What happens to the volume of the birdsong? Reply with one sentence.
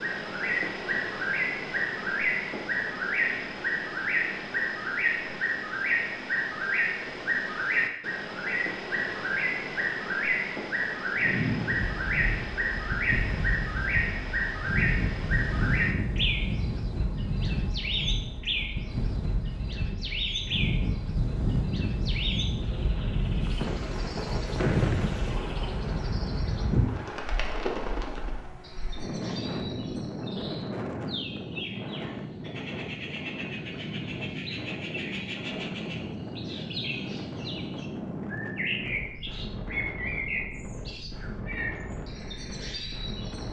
The loudness of the birdsong goes down.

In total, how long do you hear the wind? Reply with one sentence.
The wind can be heard for 32 seconds in total.